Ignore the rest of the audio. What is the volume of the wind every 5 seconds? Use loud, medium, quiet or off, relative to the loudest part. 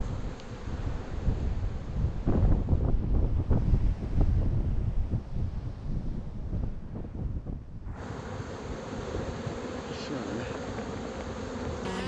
loud, medium, medium.